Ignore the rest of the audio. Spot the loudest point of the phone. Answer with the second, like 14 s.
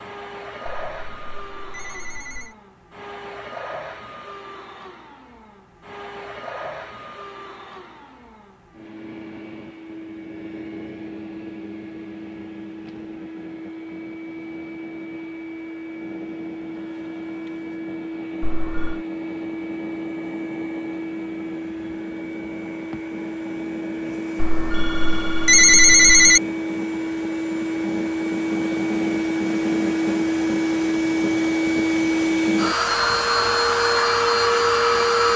26 s.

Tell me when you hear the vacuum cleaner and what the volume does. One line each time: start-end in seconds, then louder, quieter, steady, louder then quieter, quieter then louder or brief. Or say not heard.
0.0-35.3 louder.